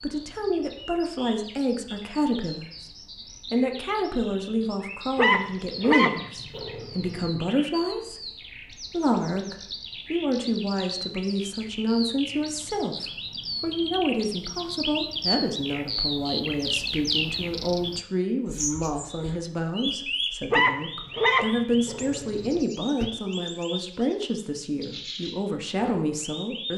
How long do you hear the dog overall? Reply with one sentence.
The dog can be heard for 5 seconds in total.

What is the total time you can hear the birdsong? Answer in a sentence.
The birdsong can be heard for 27 seconds in total.